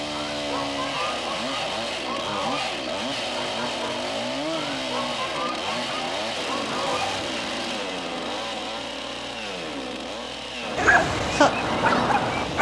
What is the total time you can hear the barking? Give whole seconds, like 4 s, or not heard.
2 s.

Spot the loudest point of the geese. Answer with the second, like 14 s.
12 s.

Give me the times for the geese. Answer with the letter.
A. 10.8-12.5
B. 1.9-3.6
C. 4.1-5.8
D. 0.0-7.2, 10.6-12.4
D.